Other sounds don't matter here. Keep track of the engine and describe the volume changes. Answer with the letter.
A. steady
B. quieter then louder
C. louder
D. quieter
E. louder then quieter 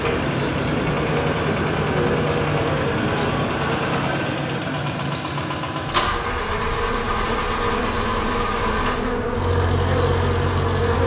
A.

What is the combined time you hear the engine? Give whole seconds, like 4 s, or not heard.
11 s.